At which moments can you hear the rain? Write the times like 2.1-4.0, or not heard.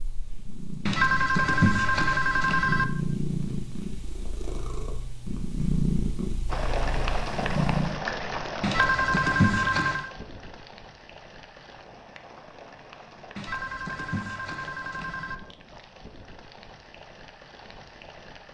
6.5-18.4.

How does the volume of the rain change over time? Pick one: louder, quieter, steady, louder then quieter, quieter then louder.
quieter.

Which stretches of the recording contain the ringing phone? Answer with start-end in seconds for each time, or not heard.
0.8-2.9, 8.6-10.1, 13.3-15.3.